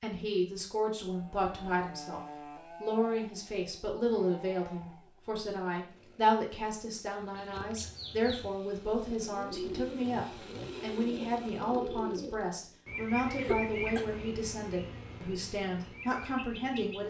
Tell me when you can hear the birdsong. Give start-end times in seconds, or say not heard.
7.2-17.0.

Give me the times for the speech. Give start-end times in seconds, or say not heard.
0.0-17.0.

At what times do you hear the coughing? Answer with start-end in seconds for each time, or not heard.
13.2-14.1.